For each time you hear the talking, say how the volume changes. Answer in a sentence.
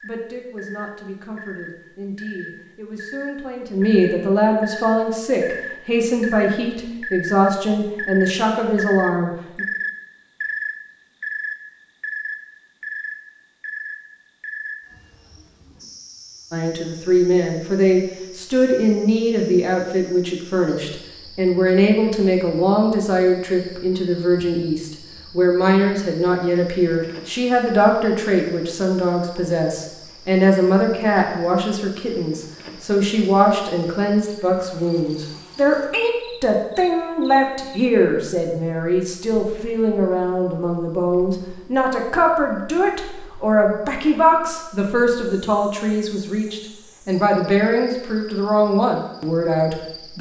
The talking can be heard from 0.0 to 9.7 s, getting louder; and from 16.5 to 50.1 s, at a steady volume.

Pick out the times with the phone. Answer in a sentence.
The phone can't be heard in this clip.